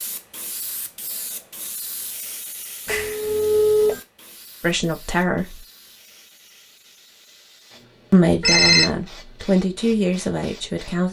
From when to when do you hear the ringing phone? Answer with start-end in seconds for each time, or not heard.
2.9-4.0, 8.4-8.8.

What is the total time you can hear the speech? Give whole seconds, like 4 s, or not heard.
4 s.